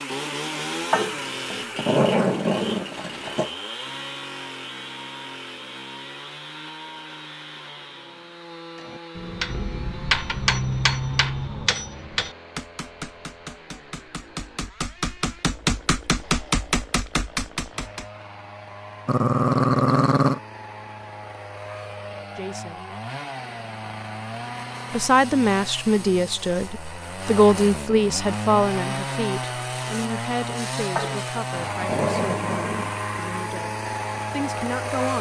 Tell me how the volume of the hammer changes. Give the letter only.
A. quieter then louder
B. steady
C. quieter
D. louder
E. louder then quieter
A.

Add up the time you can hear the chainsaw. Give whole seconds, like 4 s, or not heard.
35 s.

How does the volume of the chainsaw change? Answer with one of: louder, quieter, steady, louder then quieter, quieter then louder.
quieter then louder.